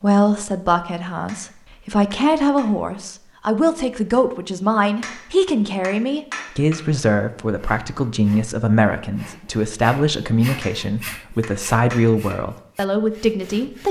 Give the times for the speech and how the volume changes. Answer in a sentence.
You can hear the speech from 0.0 to 13.8 s, at a steady volume.